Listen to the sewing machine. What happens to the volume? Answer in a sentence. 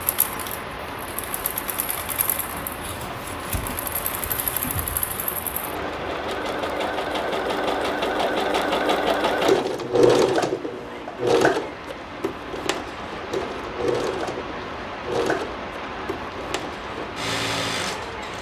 The volume of the sewing machine goes up, then down.